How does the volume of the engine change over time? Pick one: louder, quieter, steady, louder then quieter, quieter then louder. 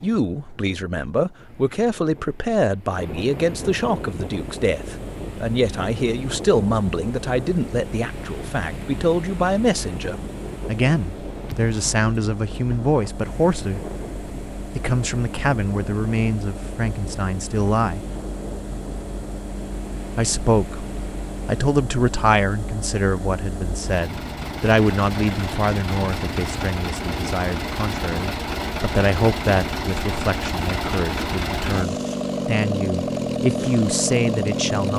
louder.